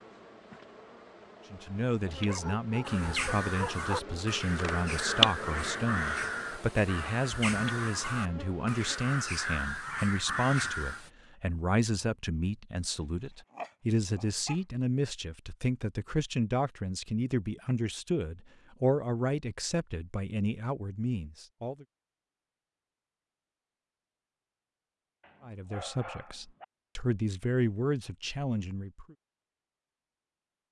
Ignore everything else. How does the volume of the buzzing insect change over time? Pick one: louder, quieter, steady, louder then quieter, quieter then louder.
louder then quieter.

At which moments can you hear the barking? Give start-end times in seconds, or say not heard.
2.2-4.0, 13.0-14.6, 25.2-26.6.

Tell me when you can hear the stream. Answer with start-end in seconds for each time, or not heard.
not heard.